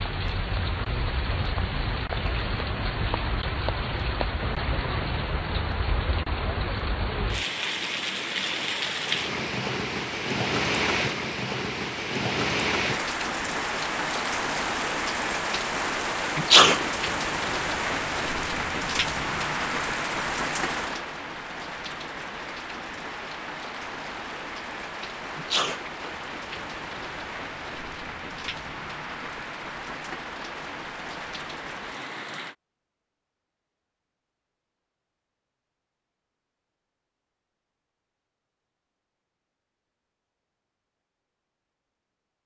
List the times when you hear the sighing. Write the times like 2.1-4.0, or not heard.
not heard.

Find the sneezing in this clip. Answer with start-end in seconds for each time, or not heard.
16.4-16.9, 25.4-25.9.